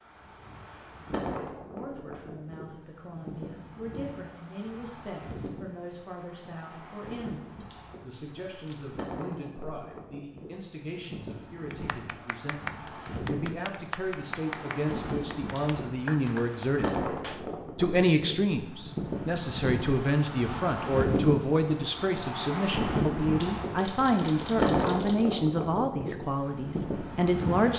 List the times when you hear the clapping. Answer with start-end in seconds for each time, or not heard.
11.7-17.5.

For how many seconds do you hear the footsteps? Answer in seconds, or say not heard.
not heard.